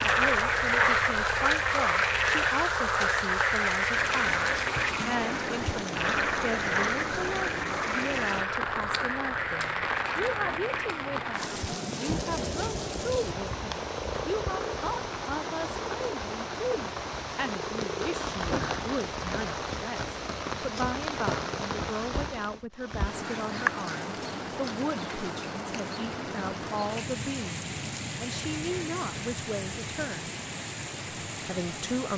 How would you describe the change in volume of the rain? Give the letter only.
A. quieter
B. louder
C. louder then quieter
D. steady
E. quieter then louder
D.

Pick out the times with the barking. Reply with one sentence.
The barking can't be heard in this clip.